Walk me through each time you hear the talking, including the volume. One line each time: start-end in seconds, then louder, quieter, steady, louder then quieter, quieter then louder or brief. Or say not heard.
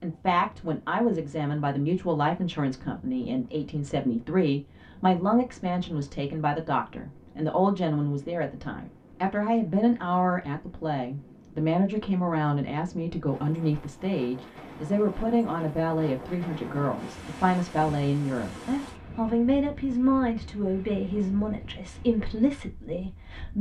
0.0-23.5 steady.